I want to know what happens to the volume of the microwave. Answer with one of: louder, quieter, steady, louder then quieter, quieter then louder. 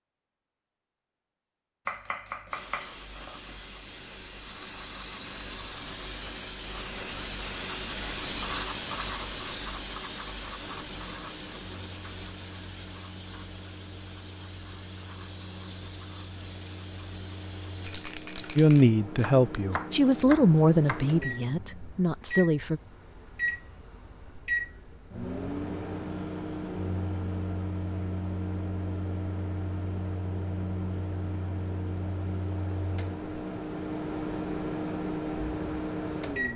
louder.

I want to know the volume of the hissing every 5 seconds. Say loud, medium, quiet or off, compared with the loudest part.
medium, loud, medium, medium, off, off, off, off.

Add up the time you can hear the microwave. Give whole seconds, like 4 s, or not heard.
26 s.